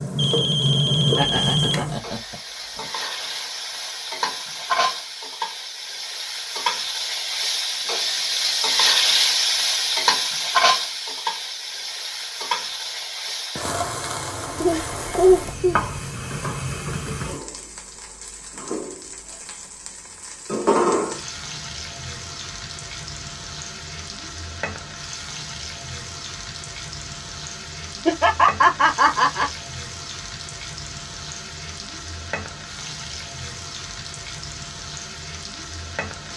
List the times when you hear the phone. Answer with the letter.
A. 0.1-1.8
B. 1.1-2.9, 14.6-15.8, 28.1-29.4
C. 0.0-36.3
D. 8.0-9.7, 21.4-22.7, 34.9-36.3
A.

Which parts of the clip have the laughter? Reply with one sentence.
The laughter can be heard from 1.1 to 2.9 s, from 14.6 to 15.8 s and from 28.1 to 29.4 s.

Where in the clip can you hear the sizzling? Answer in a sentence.
You can hear the sizzling from 0.0 to 36.3 s.